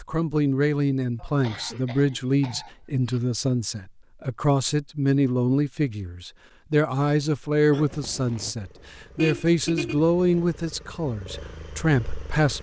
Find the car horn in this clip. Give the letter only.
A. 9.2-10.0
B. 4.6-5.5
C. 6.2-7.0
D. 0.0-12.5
A.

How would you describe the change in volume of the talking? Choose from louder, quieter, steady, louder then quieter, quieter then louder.
steady.